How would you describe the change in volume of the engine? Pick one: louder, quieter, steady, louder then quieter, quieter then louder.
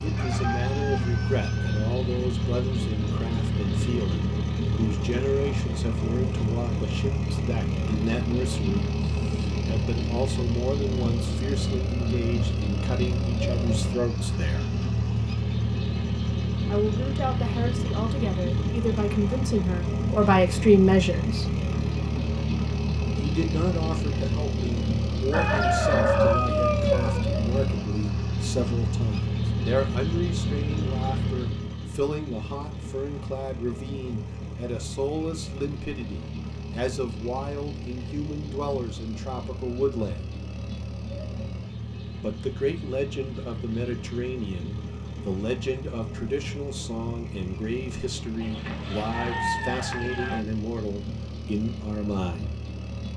quieter.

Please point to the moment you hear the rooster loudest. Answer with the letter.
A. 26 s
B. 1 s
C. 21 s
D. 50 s
A.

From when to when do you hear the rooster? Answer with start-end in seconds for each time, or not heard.
0.1-1.9, 25.3-27.2, 48.4-50.4.